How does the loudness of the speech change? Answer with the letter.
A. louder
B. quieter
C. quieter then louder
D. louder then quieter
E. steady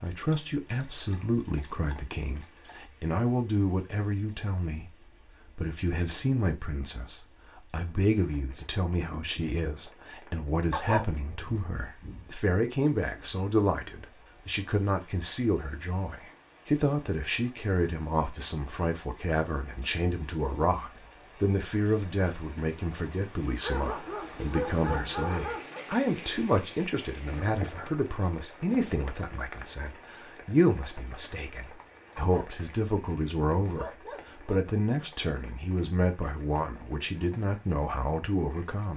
E.